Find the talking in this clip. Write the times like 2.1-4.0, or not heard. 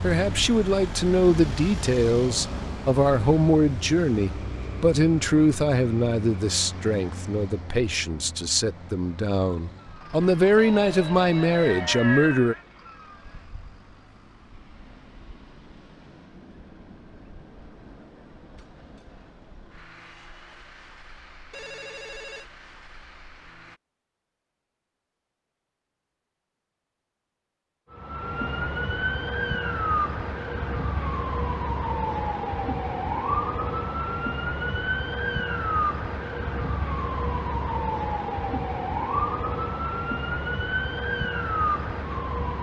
0.0-12.6.